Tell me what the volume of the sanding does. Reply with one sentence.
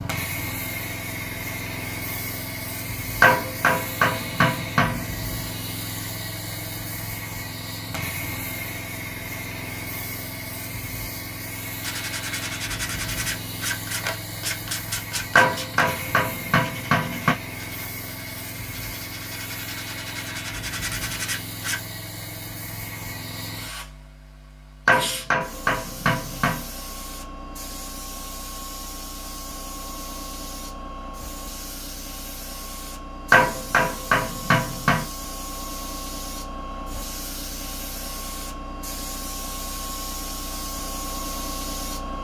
The volume of the sanding goes down, then up.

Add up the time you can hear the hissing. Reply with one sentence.
You can hear the hissing for 42 seconds altogether.